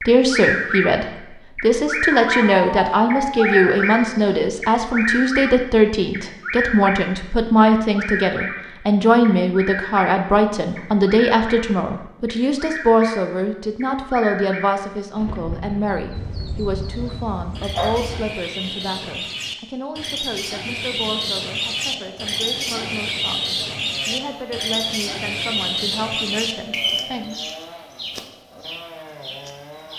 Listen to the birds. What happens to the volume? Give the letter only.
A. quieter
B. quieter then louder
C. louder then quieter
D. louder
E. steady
B.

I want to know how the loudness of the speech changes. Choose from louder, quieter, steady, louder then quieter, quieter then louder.
quieter.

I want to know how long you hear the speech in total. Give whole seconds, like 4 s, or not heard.
27 s.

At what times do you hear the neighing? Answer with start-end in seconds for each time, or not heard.
not heard.